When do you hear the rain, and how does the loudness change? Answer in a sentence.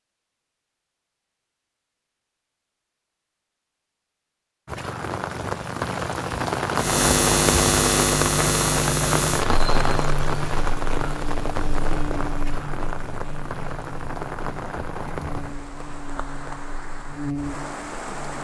You can hear the rain from 4.7 to 18.3 s, getting quieter.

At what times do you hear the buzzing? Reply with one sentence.
You can hear the buzzing from 6.8 to 18.3 s.